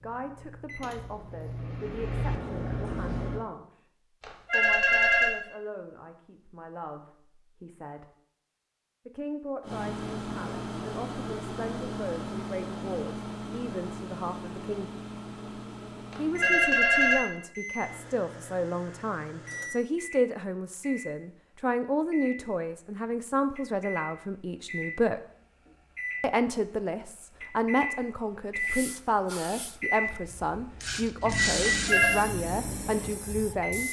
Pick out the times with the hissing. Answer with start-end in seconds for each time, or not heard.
28.6-33.8.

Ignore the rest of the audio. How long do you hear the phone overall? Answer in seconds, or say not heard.
3 s.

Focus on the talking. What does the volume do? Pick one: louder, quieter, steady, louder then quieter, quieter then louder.
louder.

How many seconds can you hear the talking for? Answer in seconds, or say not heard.
30 s.